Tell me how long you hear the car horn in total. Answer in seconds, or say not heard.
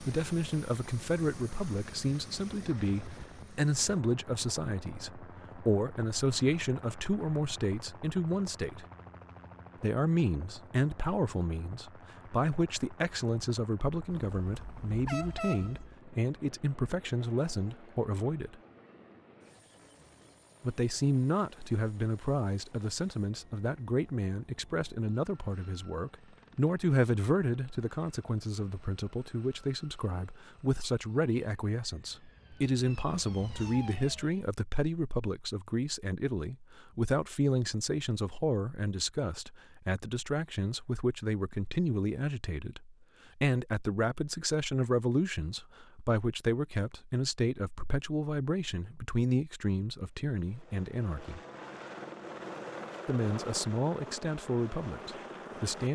2 s.